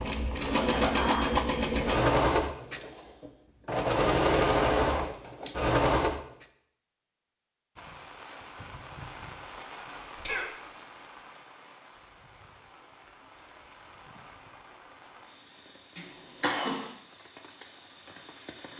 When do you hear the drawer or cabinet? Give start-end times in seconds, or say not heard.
not heard.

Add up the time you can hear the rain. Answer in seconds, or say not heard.
11 s.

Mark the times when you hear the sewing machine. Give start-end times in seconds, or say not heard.
0.0-6.5.